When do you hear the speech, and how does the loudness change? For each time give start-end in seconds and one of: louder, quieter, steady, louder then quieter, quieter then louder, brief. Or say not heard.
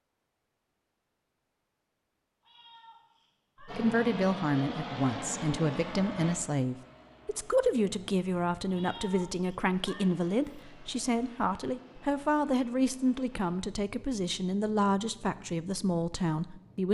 3.6-16.9 steady.